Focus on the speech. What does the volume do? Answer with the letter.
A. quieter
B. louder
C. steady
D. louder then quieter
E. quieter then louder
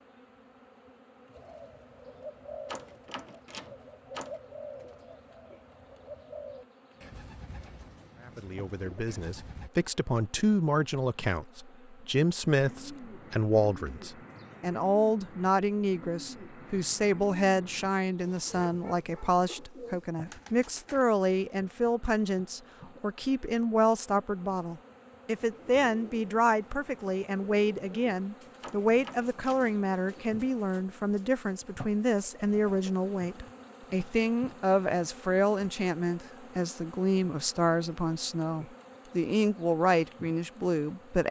C.